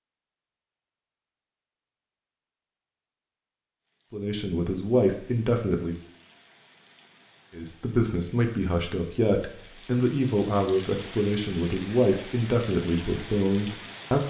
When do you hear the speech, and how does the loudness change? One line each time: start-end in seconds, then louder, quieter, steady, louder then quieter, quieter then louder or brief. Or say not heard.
4.1-6.0 brief
7.5-14.2 steady.